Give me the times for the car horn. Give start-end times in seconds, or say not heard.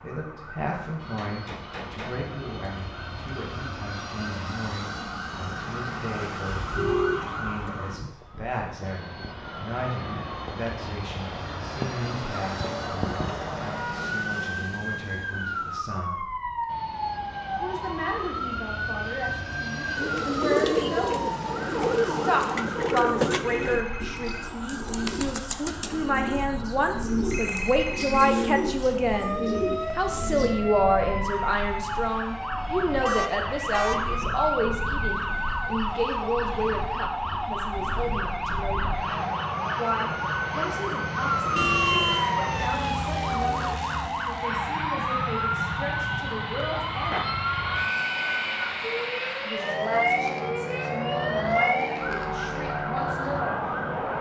6.5-8.2, 33.0-34.1, 41.5-42.2.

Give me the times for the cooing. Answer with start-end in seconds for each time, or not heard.
19.9-30.6.